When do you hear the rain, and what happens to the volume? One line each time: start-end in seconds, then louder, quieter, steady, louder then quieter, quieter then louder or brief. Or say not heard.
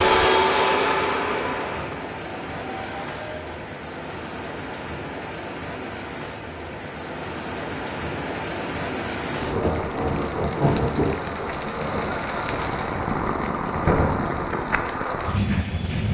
0.1-16.1 louder.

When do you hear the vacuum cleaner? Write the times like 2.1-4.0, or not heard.
0.0-3.5.